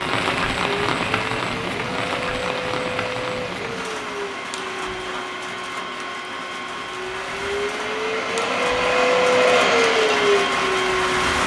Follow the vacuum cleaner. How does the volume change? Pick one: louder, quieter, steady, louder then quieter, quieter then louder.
louder.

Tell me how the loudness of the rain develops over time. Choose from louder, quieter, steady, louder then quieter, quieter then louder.
quieter then louder.